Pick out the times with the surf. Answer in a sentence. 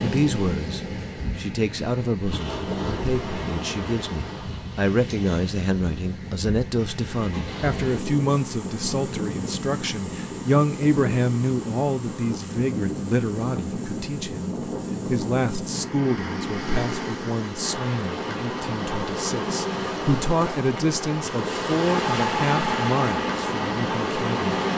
You can hear the surf from 0.0 to 24.7 s.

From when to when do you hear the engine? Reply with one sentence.
The engine can be heard from 21.8 to 24.7 s.